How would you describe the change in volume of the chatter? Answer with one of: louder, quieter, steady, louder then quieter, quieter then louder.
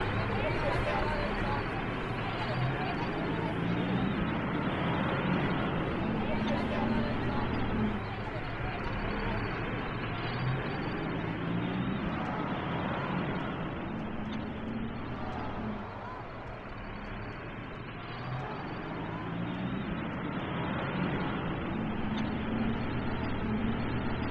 quieter.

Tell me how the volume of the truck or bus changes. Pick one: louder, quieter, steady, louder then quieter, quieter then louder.
quieter then louder.